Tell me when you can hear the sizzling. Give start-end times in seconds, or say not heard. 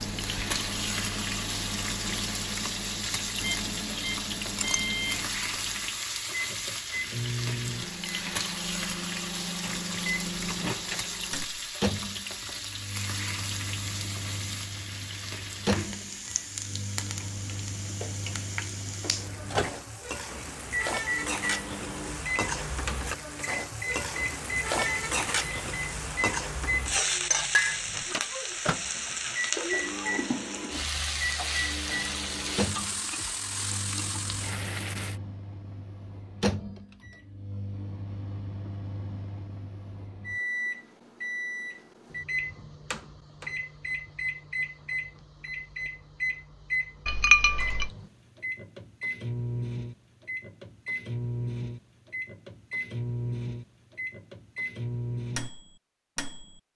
0.0-35.2.